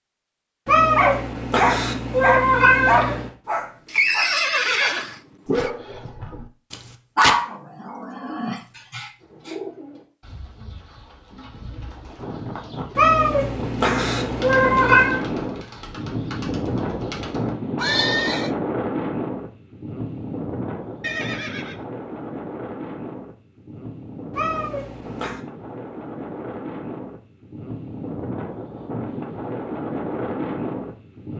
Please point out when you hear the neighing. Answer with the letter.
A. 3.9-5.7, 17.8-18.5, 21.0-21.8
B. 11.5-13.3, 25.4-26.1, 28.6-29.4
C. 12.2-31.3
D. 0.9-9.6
A.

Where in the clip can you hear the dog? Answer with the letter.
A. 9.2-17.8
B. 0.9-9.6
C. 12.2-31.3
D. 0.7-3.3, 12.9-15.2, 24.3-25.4
B.